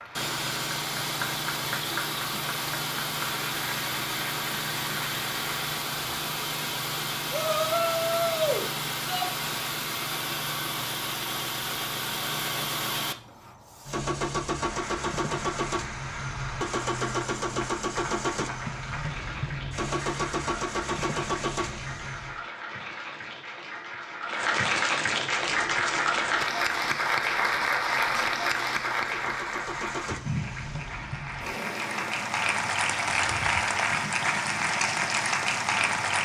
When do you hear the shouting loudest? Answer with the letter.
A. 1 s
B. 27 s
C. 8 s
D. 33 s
C.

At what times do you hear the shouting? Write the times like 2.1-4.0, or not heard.
7.3-9.3.